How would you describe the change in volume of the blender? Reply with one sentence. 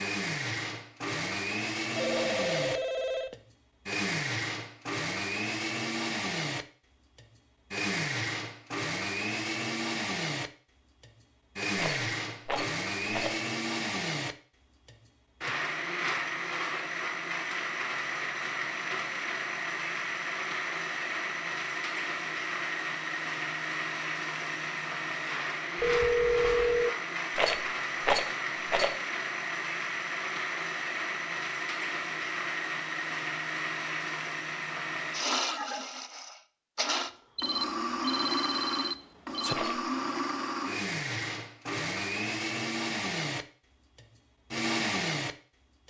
The loudness of the blender stays about the same.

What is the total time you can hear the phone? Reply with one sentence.
The phone can be heard for 5 seconds in total.